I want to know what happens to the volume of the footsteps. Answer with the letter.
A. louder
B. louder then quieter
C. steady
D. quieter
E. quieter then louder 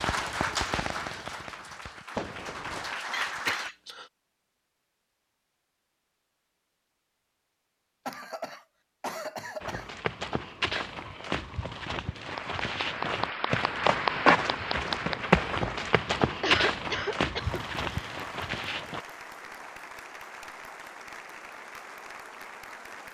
B.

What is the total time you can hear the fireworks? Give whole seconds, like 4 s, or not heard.
3 s.